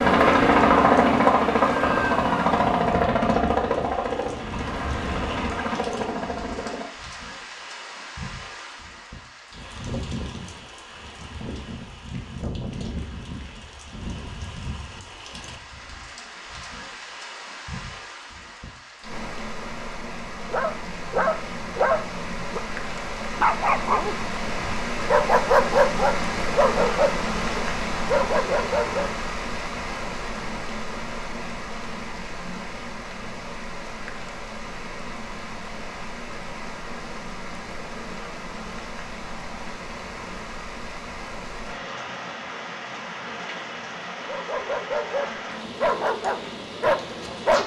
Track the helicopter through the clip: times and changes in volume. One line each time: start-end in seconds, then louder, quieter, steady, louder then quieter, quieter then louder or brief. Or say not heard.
0.0-6.8 quieter.